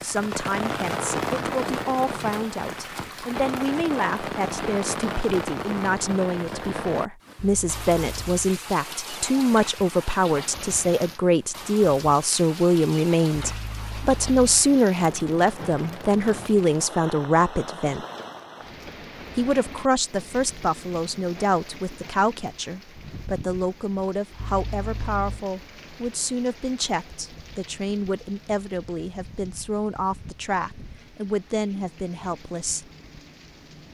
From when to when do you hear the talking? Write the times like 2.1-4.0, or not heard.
0.0-18.1, 19.4-32.9.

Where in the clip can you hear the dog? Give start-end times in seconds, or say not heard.
not heard.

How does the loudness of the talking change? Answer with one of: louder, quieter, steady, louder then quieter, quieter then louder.
louder then quieter.